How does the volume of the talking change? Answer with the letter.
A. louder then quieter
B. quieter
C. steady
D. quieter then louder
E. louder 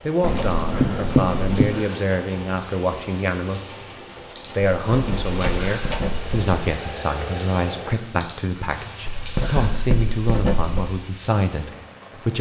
C.